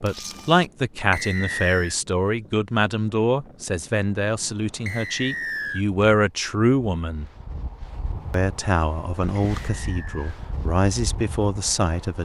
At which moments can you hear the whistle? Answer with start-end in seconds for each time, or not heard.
1.1-1.9, 4.8-5.8, 9.6-10.3.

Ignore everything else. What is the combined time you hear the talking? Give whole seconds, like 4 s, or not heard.
11 s.